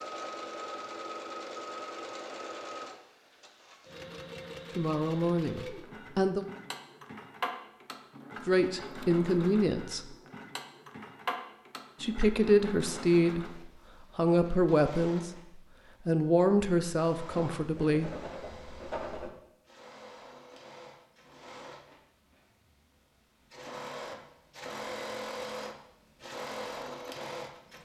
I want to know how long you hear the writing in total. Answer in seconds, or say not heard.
2 s.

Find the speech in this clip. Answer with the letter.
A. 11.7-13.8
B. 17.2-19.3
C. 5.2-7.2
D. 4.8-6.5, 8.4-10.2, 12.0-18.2
D.